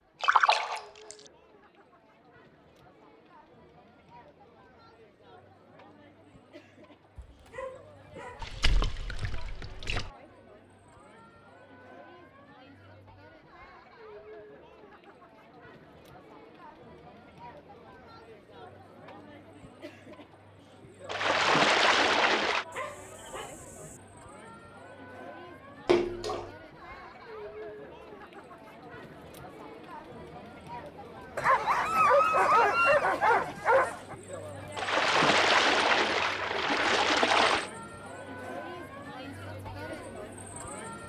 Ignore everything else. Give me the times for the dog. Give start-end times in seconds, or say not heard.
7.2-8.6, 22.7-24.0, 31.4-34.1.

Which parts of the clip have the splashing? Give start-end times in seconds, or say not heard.
0.2-1.3, 8.4-10.1, 21.1-22.6, 25.9-26.5, 34.8-37.7.